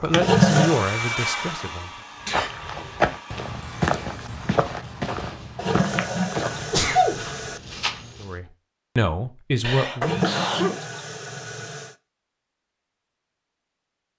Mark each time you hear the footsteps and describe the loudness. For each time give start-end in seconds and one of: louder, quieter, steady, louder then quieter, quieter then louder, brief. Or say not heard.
2.2-8.3 quieter.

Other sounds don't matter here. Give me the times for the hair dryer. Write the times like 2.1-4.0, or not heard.
0.0-4.0.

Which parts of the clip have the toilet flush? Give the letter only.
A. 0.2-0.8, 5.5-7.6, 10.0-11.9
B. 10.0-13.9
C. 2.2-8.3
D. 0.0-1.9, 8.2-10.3
A.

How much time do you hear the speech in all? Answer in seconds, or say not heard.
4 s.